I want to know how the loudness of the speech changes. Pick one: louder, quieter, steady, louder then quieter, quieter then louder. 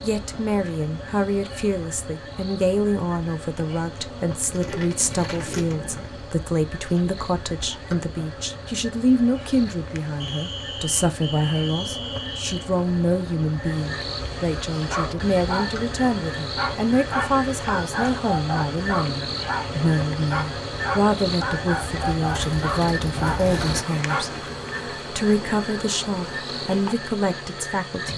steady.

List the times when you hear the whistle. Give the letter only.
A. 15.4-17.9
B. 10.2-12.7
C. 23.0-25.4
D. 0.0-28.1
B.